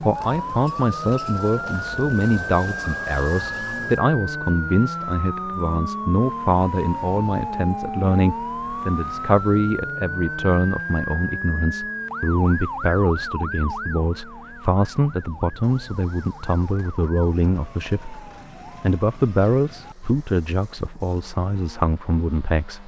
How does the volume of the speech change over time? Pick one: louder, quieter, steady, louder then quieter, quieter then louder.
steady.